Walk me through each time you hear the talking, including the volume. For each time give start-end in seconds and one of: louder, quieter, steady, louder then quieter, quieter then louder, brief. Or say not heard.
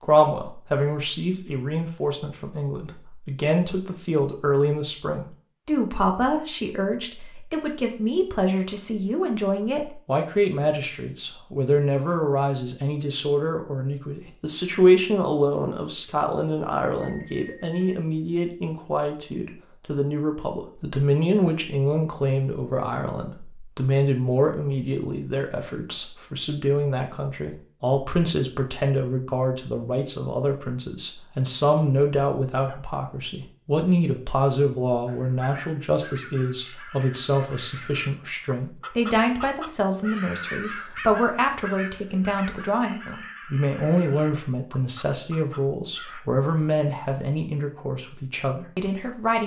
0.0-49.4 steady.